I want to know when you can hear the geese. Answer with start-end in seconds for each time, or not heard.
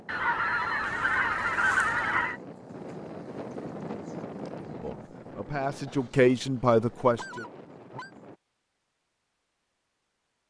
0.1-2.4, 5.8-8.1.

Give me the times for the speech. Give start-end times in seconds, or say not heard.
4.8-7.5.